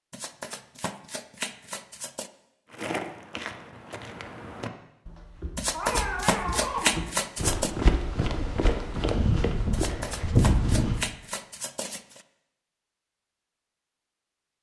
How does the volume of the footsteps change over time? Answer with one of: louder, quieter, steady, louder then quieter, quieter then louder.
louder.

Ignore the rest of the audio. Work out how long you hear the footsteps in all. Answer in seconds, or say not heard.
8 s.